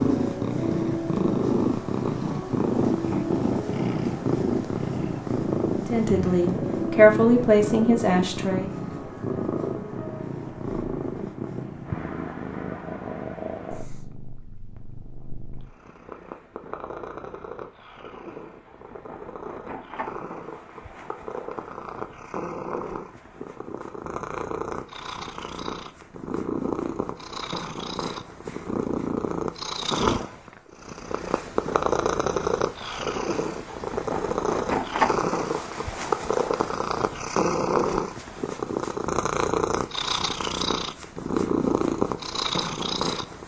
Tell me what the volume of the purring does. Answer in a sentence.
The volume of the purring goes down, then up.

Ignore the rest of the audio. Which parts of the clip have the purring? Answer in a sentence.
The purring can be heard from 0.0 to 43.4 s.